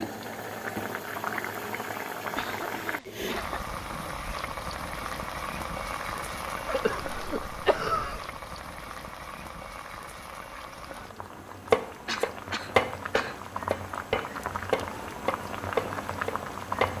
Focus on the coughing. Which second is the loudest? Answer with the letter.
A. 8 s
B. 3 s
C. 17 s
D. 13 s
A.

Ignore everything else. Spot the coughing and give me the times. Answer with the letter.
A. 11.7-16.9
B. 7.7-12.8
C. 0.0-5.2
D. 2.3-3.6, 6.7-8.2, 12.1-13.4
D.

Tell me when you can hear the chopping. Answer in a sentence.
The chopping can be heard from 11.7 to 16.9 s.